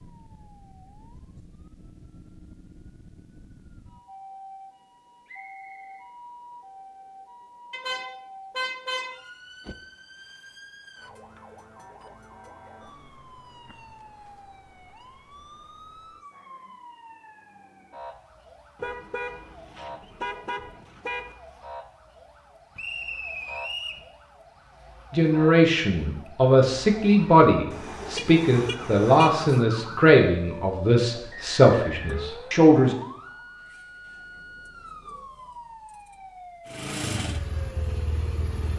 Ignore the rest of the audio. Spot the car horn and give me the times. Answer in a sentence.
You can hear the car horn from 7.7 to 9.8 s, from 18.8 to 21.4 s and from 27.7 to 29.6 s.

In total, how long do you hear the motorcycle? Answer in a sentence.
You can hear the motorcycle for 2 seconds altogether.